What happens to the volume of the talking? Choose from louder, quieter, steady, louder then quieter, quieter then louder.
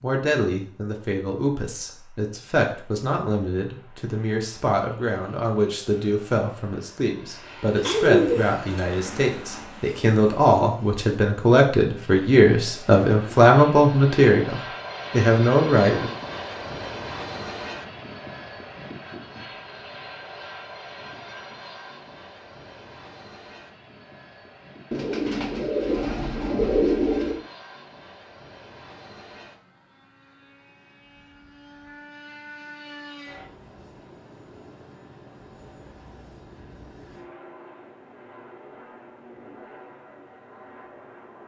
louder.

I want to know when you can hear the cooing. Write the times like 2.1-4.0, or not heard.
7.8-9.3, 24.9-27.4.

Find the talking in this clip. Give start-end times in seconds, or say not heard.
0.0-16.1.